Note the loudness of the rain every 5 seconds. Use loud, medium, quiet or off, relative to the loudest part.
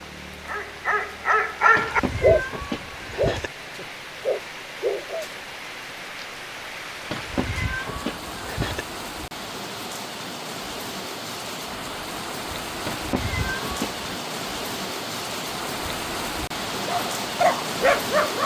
medium, medium, loud, loud.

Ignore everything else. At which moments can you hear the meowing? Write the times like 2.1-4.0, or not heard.
1.8-3.5, 7.1-8.8, 12.8-14.1.